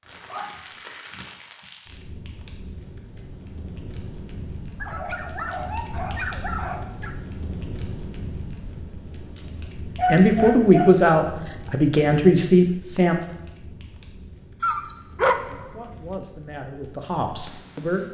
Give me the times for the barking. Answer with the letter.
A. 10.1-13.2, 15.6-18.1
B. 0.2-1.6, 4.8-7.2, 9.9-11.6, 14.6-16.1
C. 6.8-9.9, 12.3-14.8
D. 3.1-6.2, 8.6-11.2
B.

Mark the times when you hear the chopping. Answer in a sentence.
You can't hear the chopping here.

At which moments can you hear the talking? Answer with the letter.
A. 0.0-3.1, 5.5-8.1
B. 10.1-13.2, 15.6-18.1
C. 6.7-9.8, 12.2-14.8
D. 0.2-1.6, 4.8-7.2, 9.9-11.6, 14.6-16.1
B.